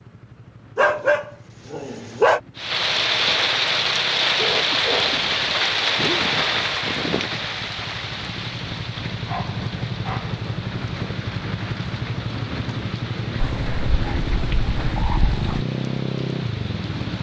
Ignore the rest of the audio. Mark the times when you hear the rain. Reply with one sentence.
The rain can be heard from 2.5 to 17.1 s.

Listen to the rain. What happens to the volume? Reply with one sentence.
The loudness of the rain goes down.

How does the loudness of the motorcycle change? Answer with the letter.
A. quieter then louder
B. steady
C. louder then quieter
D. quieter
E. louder
E.